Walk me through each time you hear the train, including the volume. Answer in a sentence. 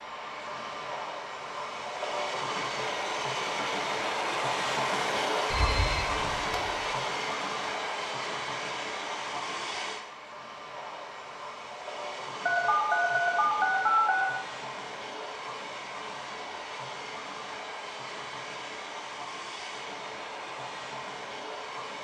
The train can be heard from 0.0 to 21.9 s, getting quieter.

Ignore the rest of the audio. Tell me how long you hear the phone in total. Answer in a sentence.
You can hear the phone for 3 seconds altogether.